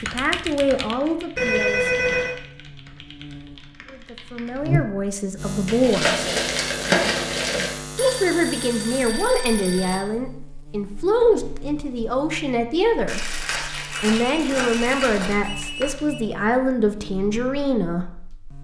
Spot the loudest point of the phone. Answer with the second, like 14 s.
2 s.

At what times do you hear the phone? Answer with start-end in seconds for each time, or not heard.
1.4-2.4, 8.0-10.1, 13.9-16.2.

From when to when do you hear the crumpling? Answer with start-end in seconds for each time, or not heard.
5.7-7.7, 13.1-15.5.